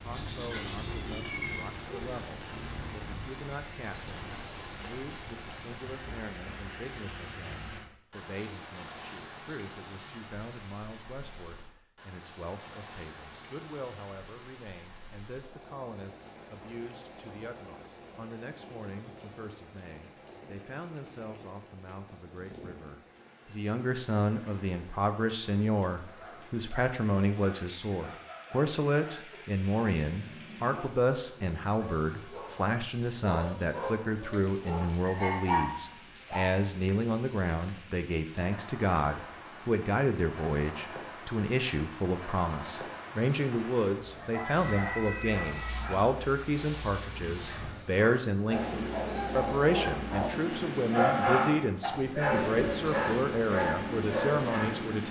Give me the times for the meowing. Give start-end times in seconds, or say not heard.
0.3-1.6, 44.3-46.0.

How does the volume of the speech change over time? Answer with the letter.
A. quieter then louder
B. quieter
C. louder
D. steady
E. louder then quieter
C.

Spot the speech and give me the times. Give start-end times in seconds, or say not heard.
0.0-55.0.